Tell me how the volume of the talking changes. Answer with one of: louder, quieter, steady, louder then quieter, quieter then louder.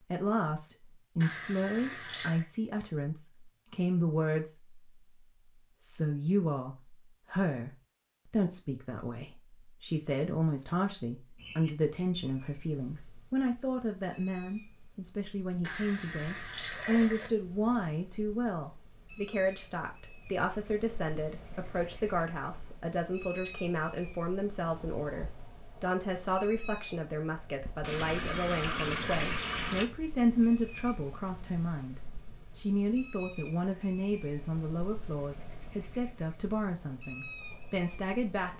steady.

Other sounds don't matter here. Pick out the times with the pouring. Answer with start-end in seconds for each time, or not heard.
1.2-2.5, 15.6-17.3, 27.8-29.9.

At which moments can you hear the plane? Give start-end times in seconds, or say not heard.
not heard.